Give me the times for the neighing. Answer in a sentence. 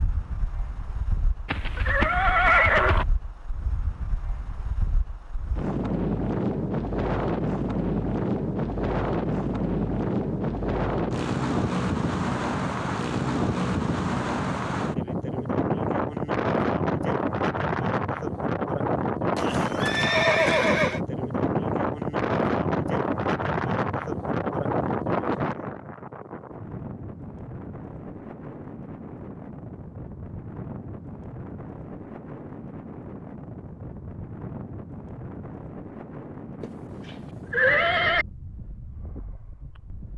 You can hear the neighing from 1.4 to 3.0 s, from 19.4 to 21.0 s and from 36.6 to 38.2 s.